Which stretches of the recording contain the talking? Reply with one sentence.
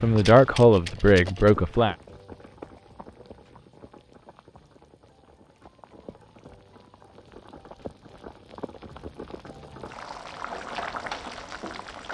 The talking can be heard from 0.0 to 1.9 s.